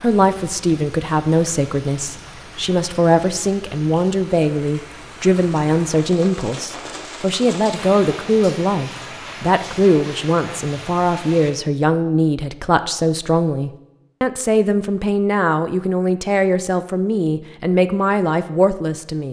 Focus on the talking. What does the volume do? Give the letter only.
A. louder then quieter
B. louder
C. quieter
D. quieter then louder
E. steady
E.